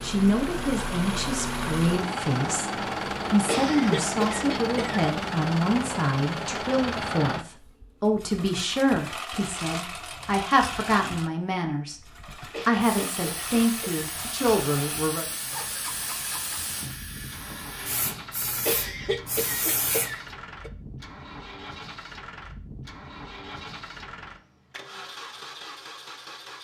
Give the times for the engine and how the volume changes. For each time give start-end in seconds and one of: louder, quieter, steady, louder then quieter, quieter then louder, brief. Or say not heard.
0.0-26.6 quieter.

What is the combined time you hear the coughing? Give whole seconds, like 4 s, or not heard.
5 s.